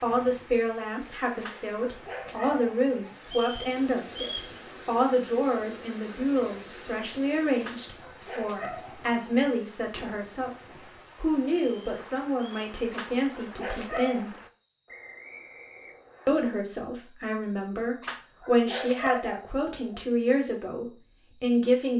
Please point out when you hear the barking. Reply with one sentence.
The barking can be heard from 1.4 to 3.4 s, from 7.6 to 9.1 s, from 12.9 to 14.3 s and from 18.0 to 20.0 s.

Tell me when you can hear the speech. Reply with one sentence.
You can hear the speech from 0.0 to 14.3 s and from 16.2 to 21.9 s.